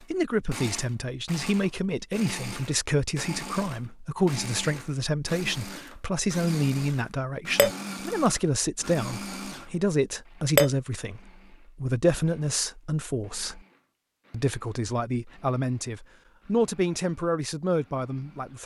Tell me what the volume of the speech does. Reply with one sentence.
The loudness of the speech stays about the same.